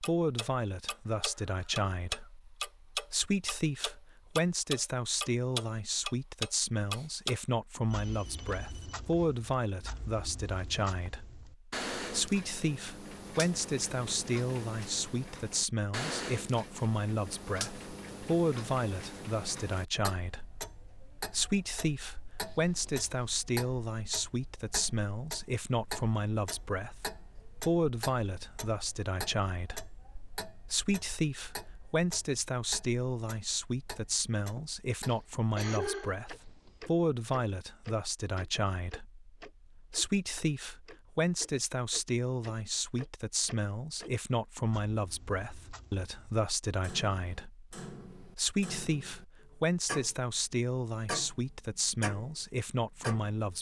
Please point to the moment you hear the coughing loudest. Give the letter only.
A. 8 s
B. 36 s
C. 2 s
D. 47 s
B.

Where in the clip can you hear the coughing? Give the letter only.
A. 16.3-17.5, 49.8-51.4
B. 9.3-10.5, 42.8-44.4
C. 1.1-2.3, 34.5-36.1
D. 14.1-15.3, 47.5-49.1
C.